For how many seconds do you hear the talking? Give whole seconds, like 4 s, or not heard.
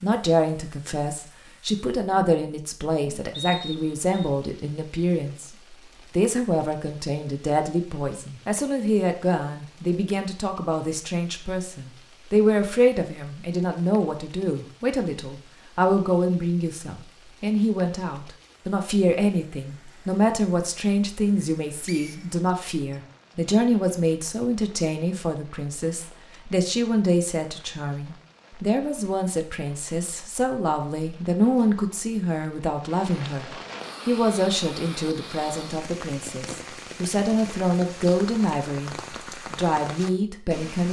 40 s.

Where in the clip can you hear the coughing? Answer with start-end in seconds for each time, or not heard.
not heard.